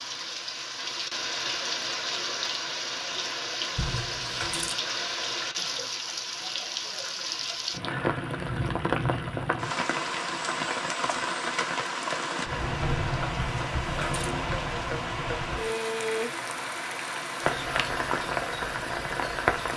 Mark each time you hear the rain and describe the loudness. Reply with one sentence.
You can hear the rain from 0.0 to 19.7 s, at a steady volume.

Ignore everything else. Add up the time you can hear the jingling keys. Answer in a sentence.
The jingling keys can be heard for 2 seconds in total.